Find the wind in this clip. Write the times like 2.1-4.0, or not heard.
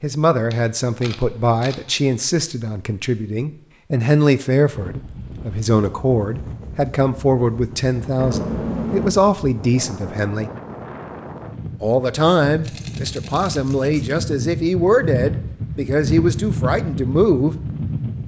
4.7-18.2.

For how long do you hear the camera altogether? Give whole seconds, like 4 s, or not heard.
4 s.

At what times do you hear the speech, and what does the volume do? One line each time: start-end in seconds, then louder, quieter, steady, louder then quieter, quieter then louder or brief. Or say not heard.
0.0-10.5 steady
11.8-17.6 steady.